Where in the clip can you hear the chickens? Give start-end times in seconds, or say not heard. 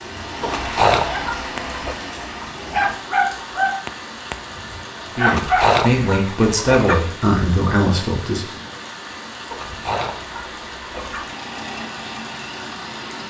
0.4-1.9, 5.2-7.0, 9.5-11.2.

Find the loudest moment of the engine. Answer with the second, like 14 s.
1 s.